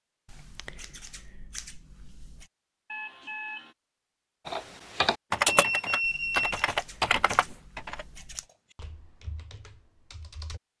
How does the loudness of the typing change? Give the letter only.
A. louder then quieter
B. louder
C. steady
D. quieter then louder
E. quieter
E.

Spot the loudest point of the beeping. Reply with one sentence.
The volume of the beeping peaks at 6 seconds.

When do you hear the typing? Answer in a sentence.
You can hear the typing from 4.5 to 10.6 s.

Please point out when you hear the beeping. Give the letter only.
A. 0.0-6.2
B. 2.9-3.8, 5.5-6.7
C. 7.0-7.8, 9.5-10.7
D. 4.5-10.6
B.